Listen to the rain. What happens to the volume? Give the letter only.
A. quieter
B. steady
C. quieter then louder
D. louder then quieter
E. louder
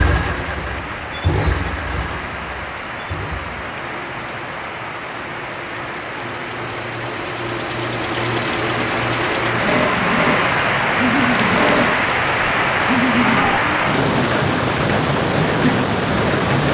E.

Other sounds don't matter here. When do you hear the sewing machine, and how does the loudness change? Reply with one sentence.
The sewing machine can be heard from 0.0 to 13.6 s, getting quieter then louder.